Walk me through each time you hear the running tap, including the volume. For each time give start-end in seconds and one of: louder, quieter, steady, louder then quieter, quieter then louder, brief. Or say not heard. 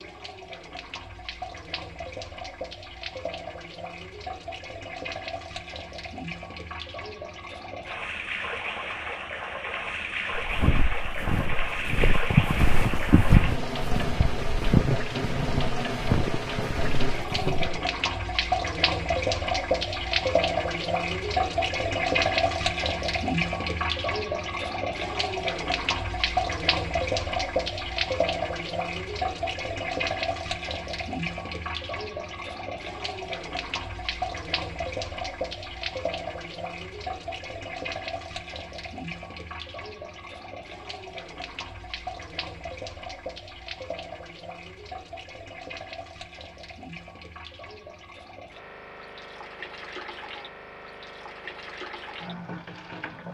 0.0-53.2 louder then quieter.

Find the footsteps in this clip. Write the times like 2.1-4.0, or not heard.
10.3-17.8.